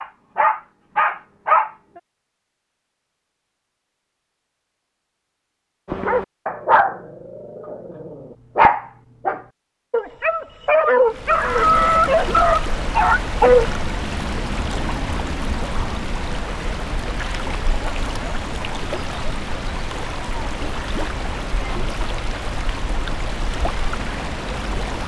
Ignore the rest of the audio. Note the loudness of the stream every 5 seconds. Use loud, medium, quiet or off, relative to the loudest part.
off, off, loud, loud, loud.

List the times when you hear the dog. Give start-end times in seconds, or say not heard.
0.0-1.7, 5.8-13.7.